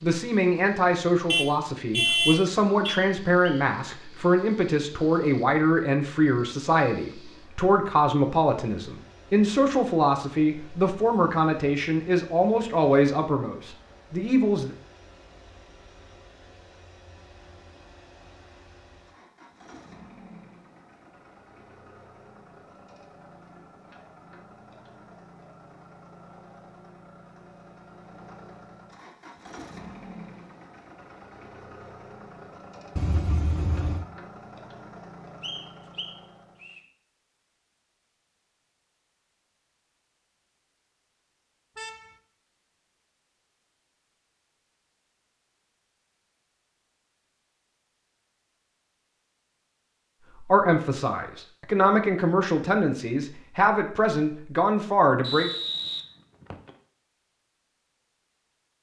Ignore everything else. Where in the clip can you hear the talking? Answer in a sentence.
You can hear the talking from 0.0 to 14.8 s and from 50.5 to 55.5 s.